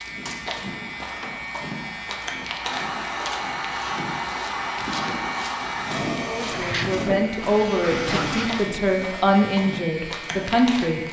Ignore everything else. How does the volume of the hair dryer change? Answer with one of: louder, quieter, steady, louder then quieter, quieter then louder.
louder.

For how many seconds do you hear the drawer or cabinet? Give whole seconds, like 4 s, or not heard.
3 s.